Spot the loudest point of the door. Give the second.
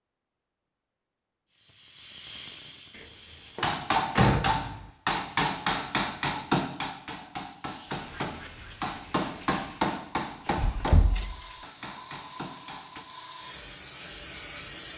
4 s.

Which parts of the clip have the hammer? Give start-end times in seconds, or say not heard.
3.6-13.1.